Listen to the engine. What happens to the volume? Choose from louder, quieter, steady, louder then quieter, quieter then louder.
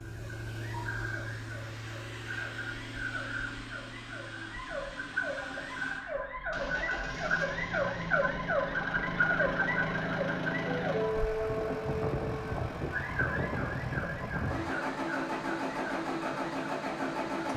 louder.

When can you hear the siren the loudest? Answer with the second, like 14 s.
9 s.